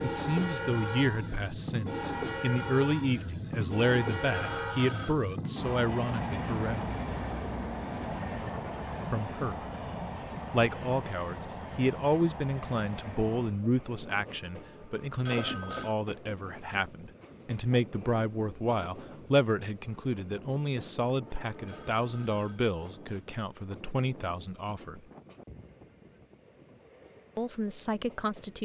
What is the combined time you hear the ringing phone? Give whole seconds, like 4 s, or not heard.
3 s.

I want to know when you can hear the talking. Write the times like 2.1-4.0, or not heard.
0.0-6.8, 9.1-9.6, 10.5-25.0, 27.4-28.6.